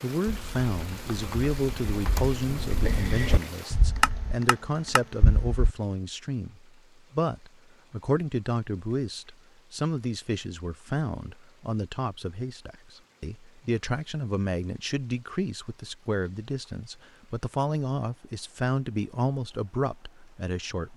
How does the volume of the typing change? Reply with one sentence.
The loudness of the typing goes up.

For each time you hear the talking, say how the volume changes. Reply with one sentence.
The talking can be heard from 0.0 to 20.9 s, at a steady volume.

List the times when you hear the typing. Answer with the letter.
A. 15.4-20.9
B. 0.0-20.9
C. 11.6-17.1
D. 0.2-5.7
D.